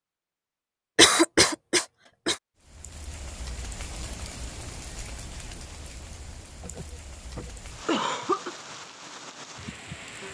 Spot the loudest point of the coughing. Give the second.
1 s.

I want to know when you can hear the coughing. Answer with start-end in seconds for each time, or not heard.
0.9-2.4, 6.6-8.5.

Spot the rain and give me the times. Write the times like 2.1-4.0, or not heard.
2.6-10.2.